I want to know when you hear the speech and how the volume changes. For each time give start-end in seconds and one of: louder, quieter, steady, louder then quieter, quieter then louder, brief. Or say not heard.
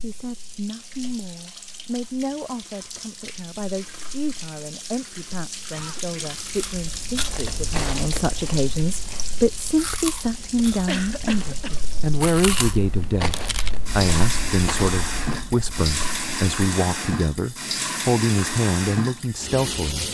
0.0-20.0 louder.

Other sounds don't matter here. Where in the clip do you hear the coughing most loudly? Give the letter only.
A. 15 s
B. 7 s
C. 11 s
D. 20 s
C.